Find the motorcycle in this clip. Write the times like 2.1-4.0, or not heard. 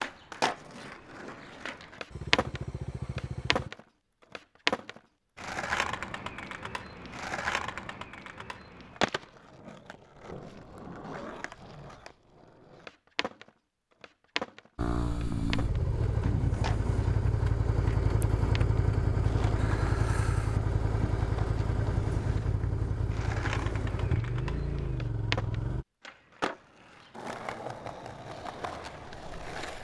2.1-3.7, 14.8-25.9.